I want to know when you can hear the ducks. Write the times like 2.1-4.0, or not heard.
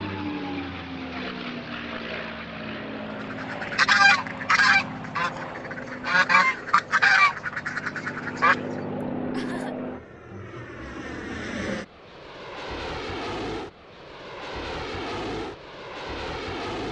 3.2-8.6.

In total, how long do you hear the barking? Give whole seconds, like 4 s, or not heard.
not heard.